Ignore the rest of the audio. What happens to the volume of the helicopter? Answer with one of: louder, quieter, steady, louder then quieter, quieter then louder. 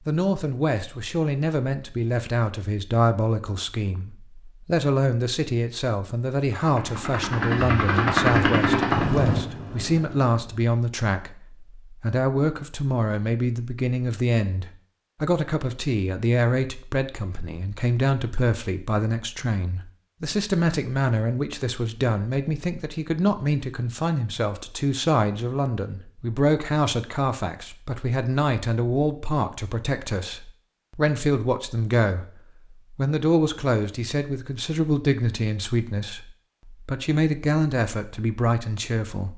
louder then quieter.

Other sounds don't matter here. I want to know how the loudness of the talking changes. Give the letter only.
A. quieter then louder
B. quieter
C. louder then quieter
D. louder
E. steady
E.